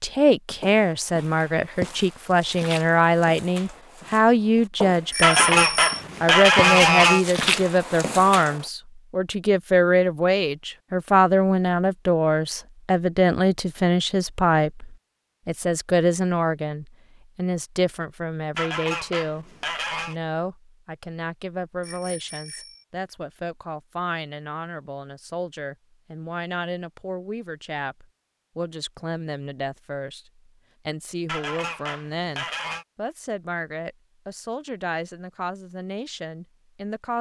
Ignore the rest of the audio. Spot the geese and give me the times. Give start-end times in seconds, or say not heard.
5.2-7.2, 18.6-20.1, 31.2-32.9.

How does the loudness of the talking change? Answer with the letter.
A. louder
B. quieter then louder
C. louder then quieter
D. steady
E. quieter
E.